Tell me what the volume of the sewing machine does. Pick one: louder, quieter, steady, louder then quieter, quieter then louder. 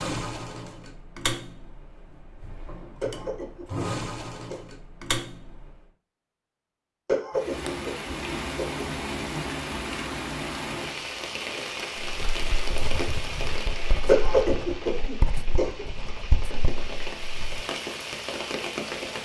quieter then louder.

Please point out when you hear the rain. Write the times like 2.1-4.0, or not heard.
7.3-19.1.